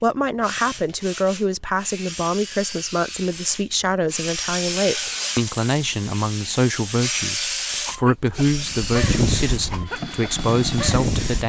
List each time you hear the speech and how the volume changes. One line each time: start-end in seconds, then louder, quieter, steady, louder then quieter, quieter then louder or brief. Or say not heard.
0.0-11.4 steady.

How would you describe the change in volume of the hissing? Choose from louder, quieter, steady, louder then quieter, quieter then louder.
louder then quieter.